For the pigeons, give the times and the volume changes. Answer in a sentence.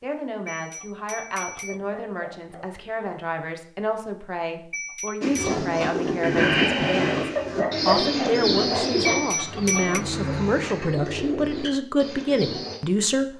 The pigeons can be heard from 5.2 to 12.8 s, getting quieter.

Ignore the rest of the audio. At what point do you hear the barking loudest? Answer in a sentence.
The volume of the barking peaks at 8 seconds.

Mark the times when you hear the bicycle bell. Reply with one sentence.
The bicycle bell can be heard from 0.5 to 1.8 s, from 4.7 to 5.5 s and from 9.1 to 10.0 s.